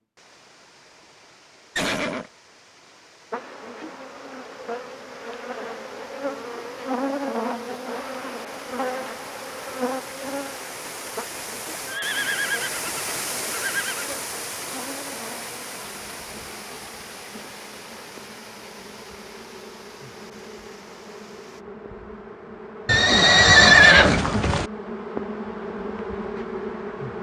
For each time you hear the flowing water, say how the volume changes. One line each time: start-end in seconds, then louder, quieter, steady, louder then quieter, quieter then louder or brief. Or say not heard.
0.0-21.6 louder then quieter.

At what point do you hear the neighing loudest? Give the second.
24 s.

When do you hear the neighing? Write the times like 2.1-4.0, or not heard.
1.8-2.3, 11.8-14.2, 22.9-24.6.